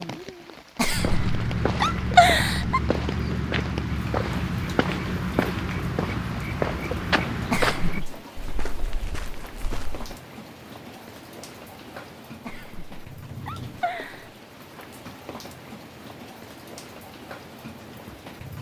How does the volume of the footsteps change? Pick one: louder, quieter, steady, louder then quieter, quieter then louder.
quieter.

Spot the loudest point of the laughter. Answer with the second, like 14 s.
2 s.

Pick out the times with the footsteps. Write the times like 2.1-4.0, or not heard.
0.9-10.1.